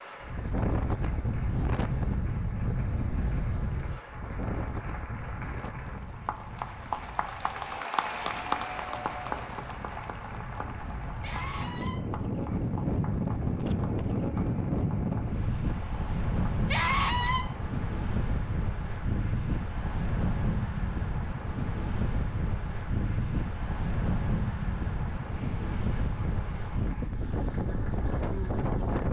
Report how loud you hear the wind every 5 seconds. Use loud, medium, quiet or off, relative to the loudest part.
loud, quiet, loud, loud, loud, loud.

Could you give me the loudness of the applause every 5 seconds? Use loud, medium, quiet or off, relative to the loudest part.
quiet, loud, medium, quiet, quiet, quiet.